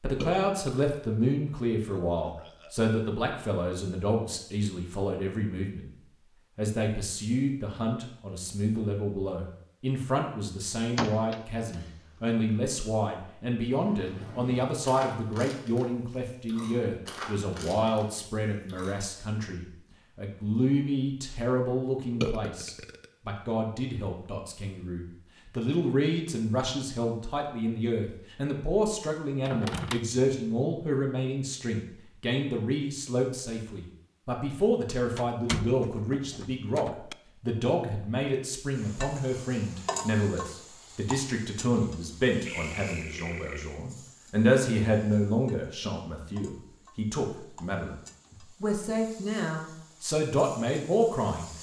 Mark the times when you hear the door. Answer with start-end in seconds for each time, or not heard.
10.9-12.2, 29.4-30.1, 35.1-37.1.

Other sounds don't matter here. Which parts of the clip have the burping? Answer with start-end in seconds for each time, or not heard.
0.2-1.1, 1.9-2.7, 22.2-23.1, 42.5-43.8.